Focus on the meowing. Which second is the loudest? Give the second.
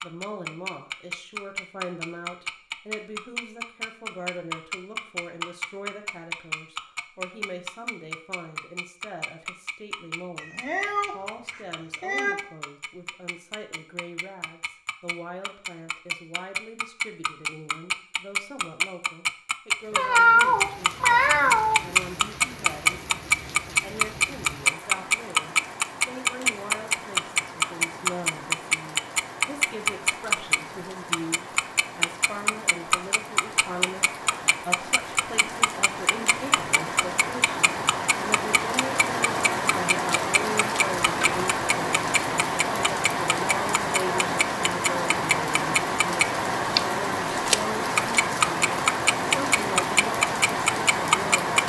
20 s.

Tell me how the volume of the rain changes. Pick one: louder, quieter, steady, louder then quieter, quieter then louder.
louder.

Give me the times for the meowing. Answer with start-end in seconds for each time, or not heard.
10.4-12.3, 19.9-21.8, 41.0-41.5.